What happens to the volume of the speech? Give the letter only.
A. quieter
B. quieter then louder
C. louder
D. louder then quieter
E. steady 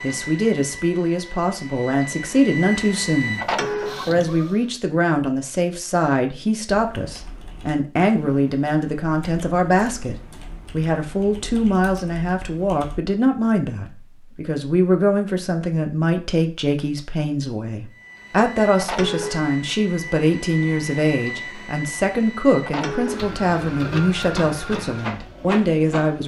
E.